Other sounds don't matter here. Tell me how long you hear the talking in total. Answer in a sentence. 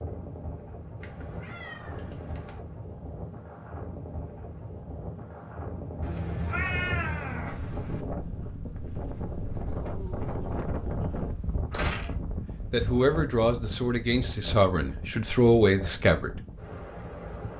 You can hear the talking for 4 seconds altogether.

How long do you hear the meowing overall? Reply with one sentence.
You can hear the meowing for 4 seconds altogether.